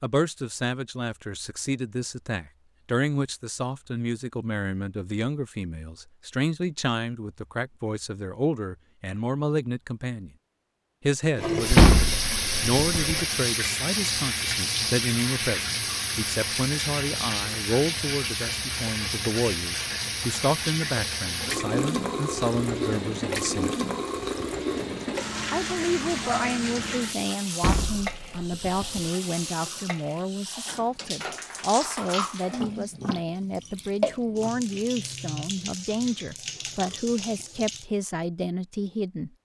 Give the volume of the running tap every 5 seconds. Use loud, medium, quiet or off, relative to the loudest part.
off, off, loud, loud, loud, medium, medium, medium.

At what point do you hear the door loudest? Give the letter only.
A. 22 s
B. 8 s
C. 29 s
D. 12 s
D.